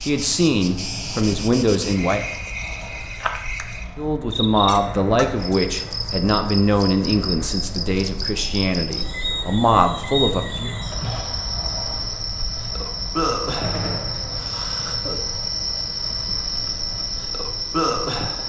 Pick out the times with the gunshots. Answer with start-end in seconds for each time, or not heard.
13.6-14.1.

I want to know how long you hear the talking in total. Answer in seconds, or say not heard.
9 s.